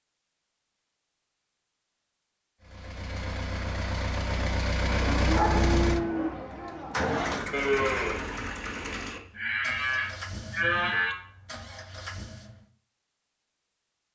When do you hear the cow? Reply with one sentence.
You can hear the cow from 4.8 to 11.2 s.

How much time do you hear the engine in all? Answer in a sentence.
The engine can be heard for 10 seconds in total.